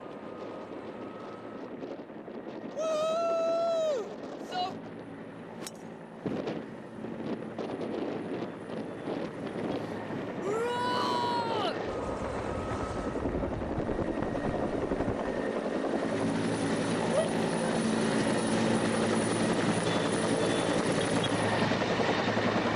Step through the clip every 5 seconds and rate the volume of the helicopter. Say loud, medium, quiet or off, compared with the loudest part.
quiet, quiet, medium, loud, loud.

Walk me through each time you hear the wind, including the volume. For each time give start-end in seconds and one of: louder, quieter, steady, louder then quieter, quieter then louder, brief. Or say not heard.
0.0-15.5 louder.